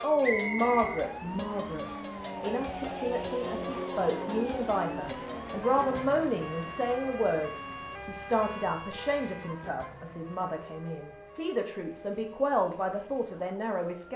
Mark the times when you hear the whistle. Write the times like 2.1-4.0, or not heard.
0.2-1.8.